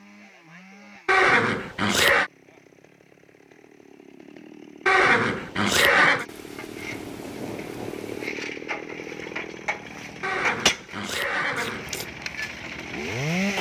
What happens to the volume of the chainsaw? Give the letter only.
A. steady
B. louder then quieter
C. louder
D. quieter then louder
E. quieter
C.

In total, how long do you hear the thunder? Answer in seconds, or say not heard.
2 s.